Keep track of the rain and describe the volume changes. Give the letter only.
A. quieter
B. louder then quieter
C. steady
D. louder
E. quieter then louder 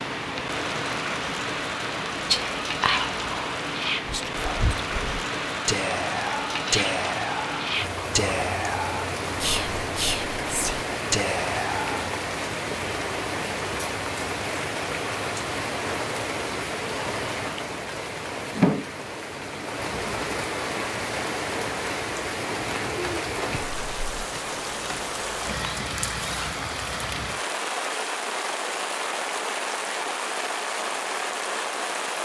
C.